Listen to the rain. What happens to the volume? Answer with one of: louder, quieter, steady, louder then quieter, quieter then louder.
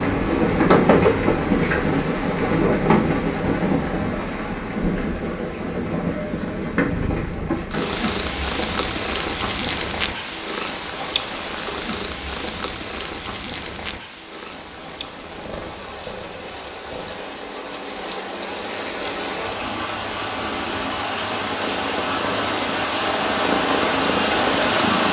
quieter then louder.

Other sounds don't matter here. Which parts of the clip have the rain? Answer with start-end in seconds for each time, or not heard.
0.0-25.0.